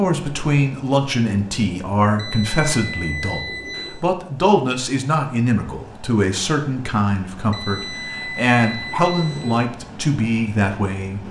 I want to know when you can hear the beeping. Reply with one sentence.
The beeping can be heard from 2.1 to 4.0 s and from 7.5 to 9.7 s.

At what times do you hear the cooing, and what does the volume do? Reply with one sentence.
The cooing can't be heard in this clip.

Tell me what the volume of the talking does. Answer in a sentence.
The loudness of the talking stays about the same.